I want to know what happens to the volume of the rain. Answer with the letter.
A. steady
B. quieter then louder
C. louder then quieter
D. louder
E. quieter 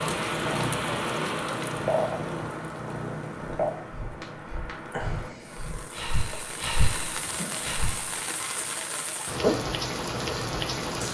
B.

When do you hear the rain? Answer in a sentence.
You can hear the rain from 0.0 to 11.0 s.